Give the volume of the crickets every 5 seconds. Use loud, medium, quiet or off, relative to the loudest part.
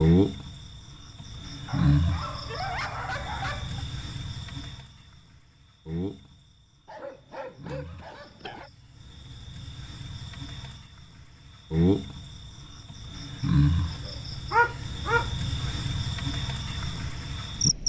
loud, quiet, loud, loud.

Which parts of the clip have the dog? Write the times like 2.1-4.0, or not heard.
1.6-3.9, 6.8-8.7, 14.5-15.3.